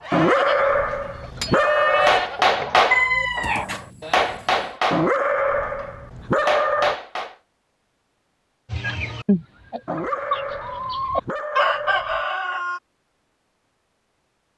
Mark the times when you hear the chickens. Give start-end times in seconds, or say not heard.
0.0-3.6, 8.7-12.8.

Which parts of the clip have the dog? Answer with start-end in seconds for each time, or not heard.
0.1-2.2, 4.9-7.0, 9.8-12.2.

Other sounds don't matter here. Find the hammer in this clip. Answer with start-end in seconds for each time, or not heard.
1.3-7.3.